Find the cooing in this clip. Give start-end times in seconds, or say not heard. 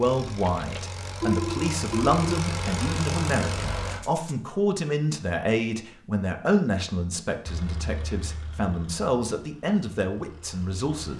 not heard.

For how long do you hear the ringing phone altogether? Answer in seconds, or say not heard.
2 s.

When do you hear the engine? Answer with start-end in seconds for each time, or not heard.
0.0-4.3, 7.5-11.1.